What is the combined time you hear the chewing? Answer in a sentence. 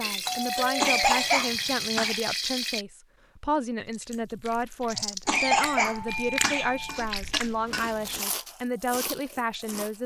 The chewing can be heard for 6 seconds in total.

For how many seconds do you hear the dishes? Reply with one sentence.
The dishes can't be heard in this clip.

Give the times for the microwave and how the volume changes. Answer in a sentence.
You can't hear the microwave here.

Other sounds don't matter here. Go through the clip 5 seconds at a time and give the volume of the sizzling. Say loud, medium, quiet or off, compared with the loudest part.
loud, medium.